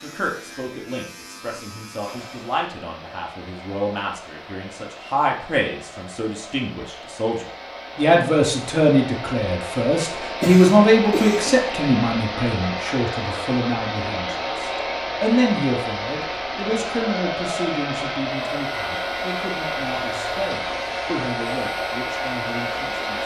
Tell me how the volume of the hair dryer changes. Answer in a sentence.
The loudness of the hair dryer goes up.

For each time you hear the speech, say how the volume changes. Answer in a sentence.
The speech can be heard from 0.0 to 23.2 s, getting louder then quieter.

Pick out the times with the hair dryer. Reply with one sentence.
You can hear the hair dryer from 2.0 to 23.2 s.